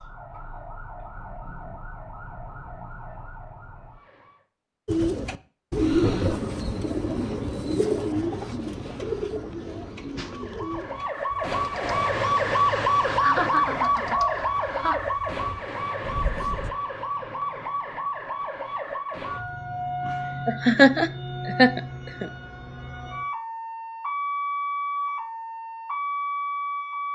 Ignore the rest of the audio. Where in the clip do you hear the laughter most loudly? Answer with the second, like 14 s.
21 s.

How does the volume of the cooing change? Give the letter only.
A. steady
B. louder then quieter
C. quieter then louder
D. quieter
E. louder
D.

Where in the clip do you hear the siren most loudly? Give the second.
13 s.